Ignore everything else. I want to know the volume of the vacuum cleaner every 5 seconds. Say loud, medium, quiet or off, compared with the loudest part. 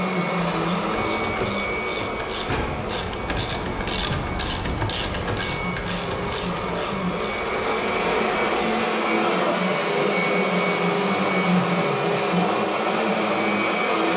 medium, loud, loud.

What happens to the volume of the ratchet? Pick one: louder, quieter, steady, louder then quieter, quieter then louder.
louder then quieter.